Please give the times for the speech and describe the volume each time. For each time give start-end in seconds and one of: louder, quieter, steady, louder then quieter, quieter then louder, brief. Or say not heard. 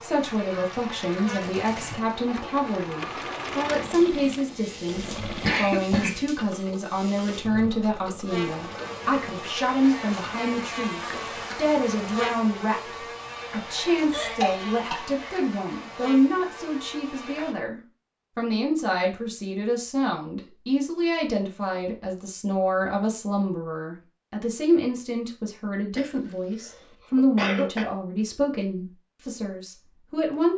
0.0-30.5 steady.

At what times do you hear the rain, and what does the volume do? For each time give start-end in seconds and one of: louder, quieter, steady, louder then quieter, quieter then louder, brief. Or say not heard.
not heard.